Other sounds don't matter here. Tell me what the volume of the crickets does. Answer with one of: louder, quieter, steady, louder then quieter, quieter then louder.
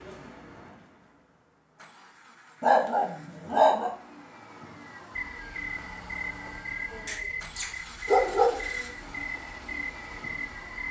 steady.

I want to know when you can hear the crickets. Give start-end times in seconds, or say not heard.
5.2-10.8.